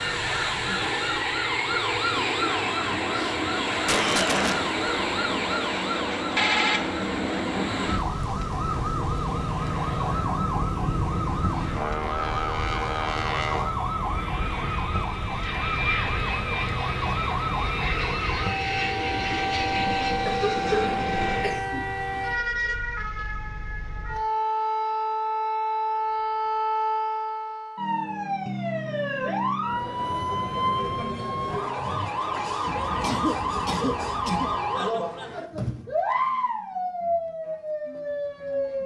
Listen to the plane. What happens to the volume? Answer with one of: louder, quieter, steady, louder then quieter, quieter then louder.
steady.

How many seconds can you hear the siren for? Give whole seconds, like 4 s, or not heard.
39 s.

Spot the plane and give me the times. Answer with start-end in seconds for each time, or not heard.
0.0-21.6.